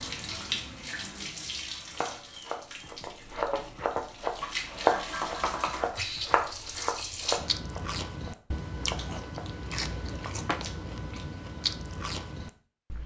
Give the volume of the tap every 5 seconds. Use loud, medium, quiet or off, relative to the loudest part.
loud, loud, off.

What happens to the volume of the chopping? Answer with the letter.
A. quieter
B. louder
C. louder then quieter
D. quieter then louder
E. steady
C.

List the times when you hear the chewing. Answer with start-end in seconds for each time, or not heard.
7.3-13.0.